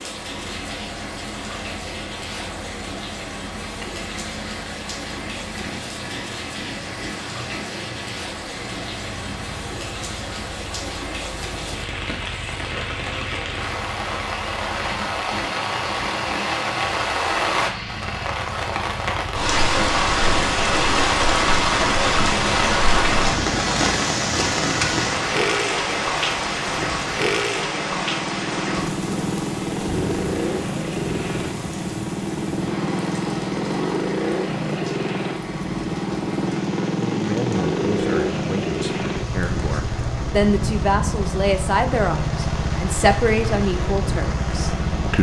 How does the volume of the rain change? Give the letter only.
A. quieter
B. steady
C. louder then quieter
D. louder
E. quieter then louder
C.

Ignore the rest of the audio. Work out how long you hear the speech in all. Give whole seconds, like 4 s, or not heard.
8 s.